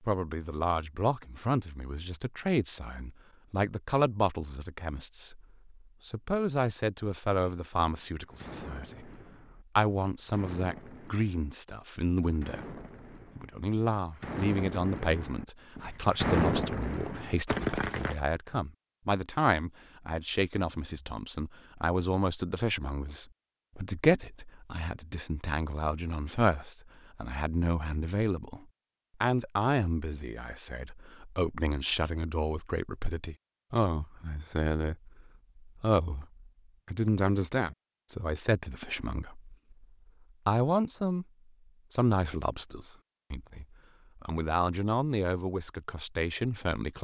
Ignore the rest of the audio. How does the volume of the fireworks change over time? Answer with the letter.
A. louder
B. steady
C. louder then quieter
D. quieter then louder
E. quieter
A.